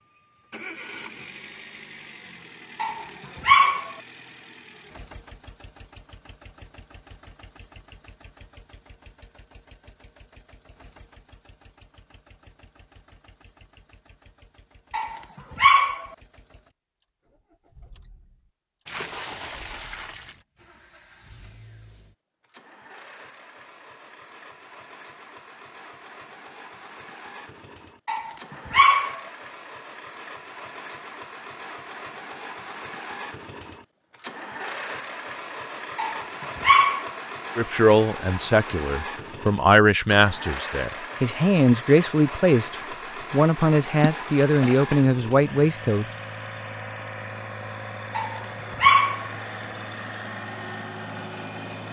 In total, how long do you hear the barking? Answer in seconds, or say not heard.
6 s.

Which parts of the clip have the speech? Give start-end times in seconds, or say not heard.
37.5-46.0.